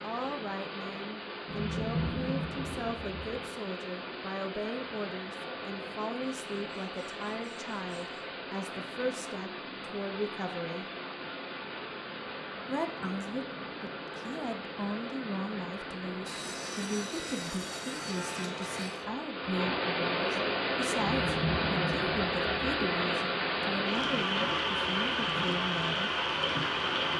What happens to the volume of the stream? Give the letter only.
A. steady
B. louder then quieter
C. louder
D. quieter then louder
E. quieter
C.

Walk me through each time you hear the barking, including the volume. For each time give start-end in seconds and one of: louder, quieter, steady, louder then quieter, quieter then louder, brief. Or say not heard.
not heard.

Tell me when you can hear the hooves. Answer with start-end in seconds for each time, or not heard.
not heard.